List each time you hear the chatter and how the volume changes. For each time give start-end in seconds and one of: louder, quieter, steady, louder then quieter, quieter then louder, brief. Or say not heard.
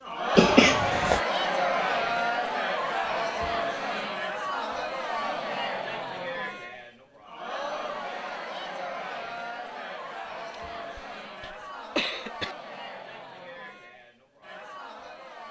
0.0-15.4 quieter.